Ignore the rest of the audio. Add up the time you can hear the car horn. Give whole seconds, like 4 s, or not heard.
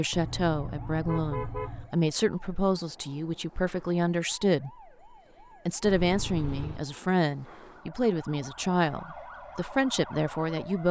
3 s.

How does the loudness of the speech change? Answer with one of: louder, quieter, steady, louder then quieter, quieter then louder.
steady.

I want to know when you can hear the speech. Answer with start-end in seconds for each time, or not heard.
0.0-4.7, 5.7-10.8.